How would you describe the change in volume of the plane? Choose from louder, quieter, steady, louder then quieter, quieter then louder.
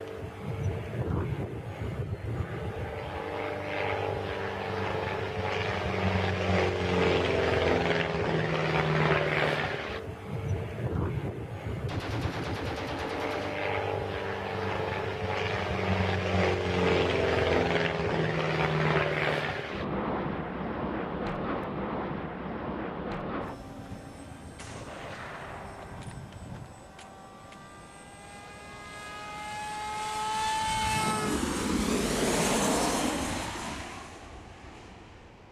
quieter then louder.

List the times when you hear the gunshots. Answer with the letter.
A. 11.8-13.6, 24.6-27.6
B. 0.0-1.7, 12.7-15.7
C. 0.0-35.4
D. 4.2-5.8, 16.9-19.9
A.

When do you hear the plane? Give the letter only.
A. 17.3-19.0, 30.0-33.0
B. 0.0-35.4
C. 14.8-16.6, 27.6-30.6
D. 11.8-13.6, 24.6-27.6
B.